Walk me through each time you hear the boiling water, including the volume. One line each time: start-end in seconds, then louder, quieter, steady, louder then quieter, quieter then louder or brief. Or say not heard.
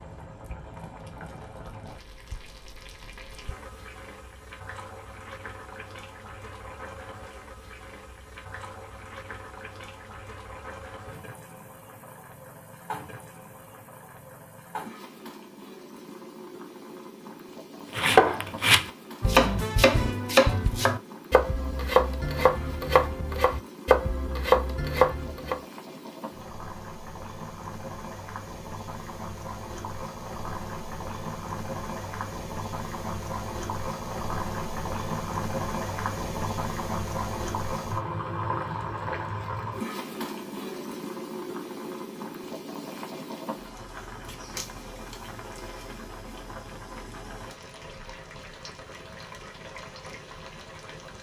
0.0-51.1 louder then quieter.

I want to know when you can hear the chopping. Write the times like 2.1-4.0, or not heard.
17.9-25.6.